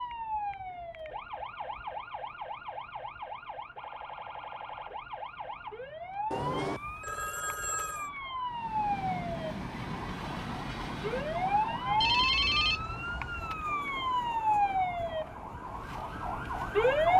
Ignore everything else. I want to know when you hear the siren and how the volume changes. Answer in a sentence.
You can hear the siren from 0.0 to 17.1 s, getting louder.